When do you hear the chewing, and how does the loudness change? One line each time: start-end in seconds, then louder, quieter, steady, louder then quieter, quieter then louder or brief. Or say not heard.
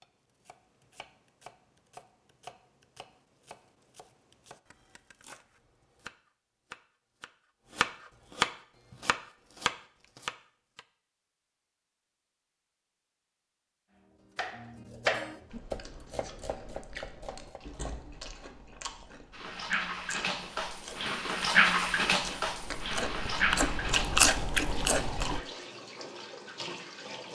15.5-25.4 louder.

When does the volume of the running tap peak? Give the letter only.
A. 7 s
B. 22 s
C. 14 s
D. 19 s
B.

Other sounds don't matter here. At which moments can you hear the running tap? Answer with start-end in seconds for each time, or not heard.
19.3-27.2.